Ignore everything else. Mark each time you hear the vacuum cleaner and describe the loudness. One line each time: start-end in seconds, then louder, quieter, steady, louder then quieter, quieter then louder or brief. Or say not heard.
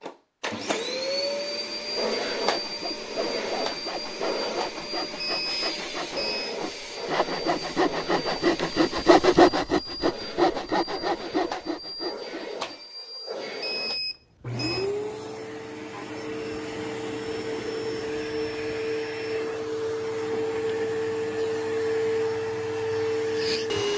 0.0-23.9 quieter then louder.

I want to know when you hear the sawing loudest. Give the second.
9 s.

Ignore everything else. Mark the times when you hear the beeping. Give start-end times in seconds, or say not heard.
5.2-6.6, 13.6-14.9.